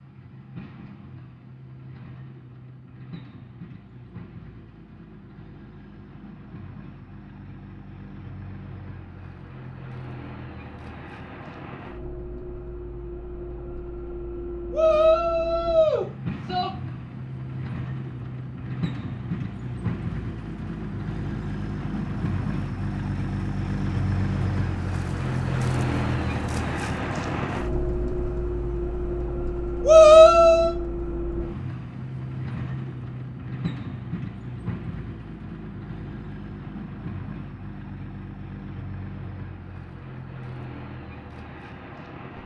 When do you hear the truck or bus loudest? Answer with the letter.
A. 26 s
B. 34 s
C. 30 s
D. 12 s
A.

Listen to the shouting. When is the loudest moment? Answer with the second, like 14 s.
30 s.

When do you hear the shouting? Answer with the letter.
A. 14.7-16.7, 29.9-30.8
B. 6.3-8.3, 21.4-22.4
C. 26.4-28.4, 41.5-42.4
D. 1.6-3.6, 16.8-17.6
A.